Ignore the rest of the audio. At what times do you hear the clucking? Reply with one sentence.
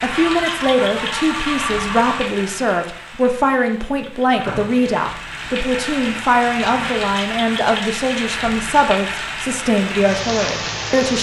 You can hear the clucking from 0.1 to 2.1 s.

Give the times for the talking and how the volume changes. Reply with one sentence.
You can hear the talking from 0.0 to 11.1 s, at a steady volume.